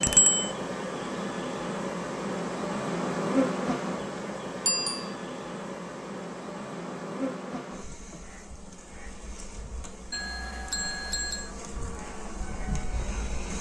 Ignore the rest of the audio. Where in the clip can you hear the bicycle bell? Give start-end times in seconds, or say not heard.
0.0-0.5, 4.7-5.2, 10.1-11.5.